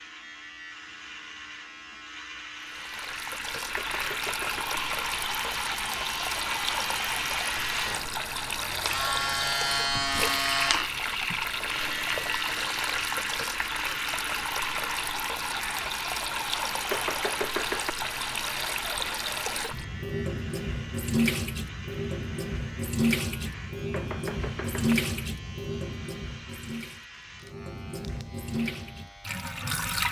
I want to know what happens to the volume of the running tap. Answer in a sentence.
The volume of the running tap stays about the same.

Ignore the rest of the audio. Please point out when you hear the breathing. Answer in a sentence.
The breathing can't be heard in this clip.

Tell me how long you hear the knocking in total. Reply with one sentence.
The knocking can be heard for 3 seconds in total.